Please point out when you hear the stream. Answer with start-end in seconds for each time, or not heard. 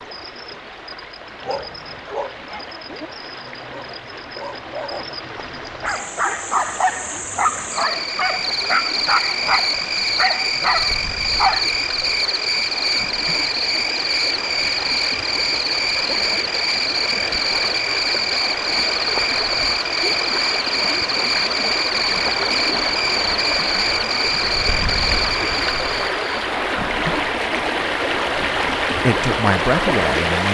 0.0-30.5.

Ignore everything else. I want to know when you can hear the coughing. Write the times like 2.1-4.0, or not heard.
not heard.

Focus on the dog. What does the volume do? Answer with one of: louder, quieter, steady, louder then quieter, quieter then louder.
louder.